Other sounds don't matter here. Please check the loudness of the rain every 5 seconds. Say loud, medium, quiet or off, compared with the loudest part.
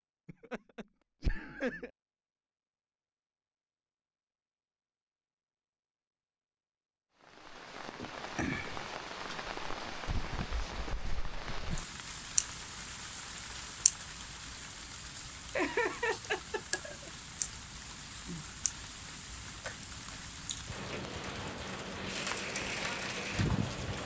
off, loud, loud, medium, loud.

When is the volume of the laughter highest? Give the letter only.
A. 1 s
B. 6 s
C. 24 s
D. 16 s
D.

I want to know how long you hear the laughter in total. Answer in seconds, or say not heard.
3 s.